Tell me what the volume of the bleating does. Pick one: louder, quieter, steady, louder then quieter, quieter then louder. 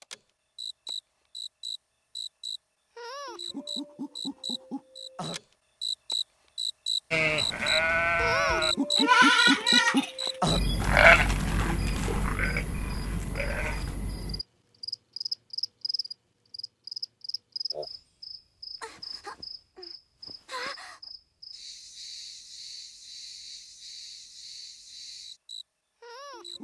louder then quieter.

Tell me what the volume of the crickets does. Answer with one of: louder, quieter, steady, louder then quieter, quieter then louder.
louder then quieter.